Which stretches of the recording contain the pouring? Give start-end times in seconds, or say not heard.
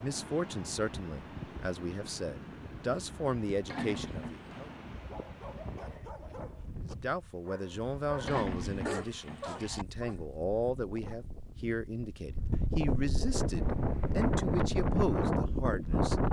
3.6-4.7, 8.2-9.8.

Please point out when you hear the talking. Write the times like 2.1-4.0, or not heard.
0.0-4.7, 6.8-16.2.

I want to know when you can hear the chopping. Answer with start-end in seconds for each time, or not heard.
not heard.